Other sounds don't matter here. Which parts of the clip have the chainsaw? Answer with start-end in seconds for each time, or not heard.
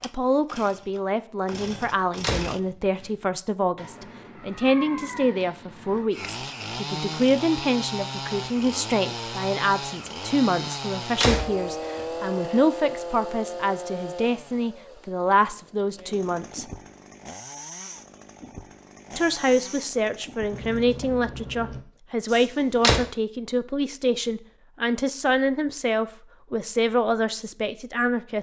0.0-2.6, 6.1-20.9.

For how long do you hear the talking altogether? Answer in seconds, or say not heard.
26 s.